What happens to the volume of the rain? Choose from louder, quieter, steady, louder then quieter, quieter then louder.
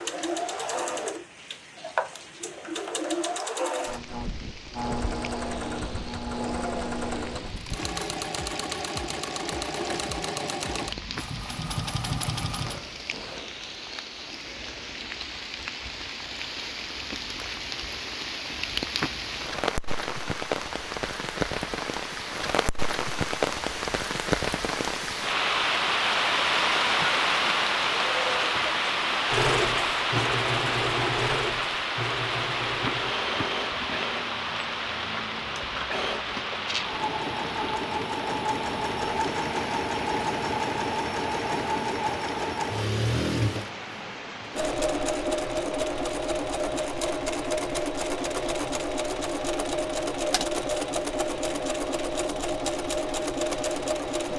louder then quieter.